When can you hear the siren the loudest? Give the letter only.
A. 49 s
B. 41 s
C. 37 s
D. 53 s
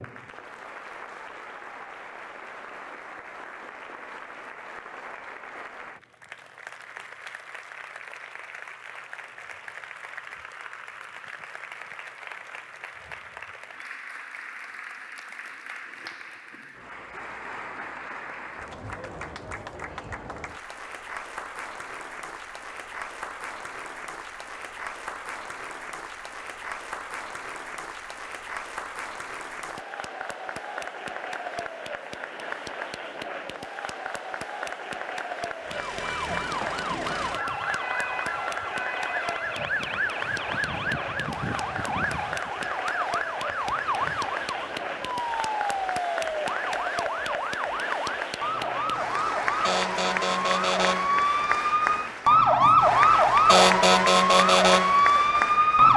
D.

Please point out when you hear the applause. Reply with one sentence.
The applause can be heard from 0.0 to 55.9 s.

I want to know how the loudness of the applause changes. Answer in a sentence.
The volume of the applause goes up.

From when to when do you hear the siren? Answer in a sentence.
You can hear the siren from 35.6 to 55.9 s.